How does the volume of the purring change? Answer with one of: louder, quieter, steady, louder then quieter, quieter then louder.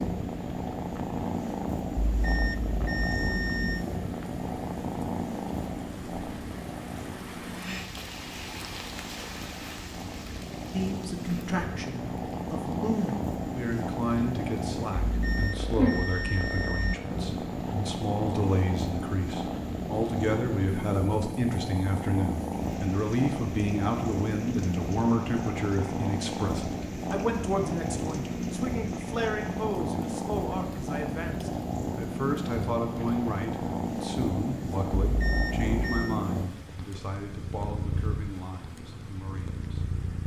steady.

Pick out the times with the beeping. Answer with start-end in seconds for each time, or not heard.
2.1-3.9, 15.1-16.9, 35.1-36.1.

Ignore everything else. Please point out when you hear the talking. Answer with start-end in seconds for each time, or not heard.
10.7-40.2.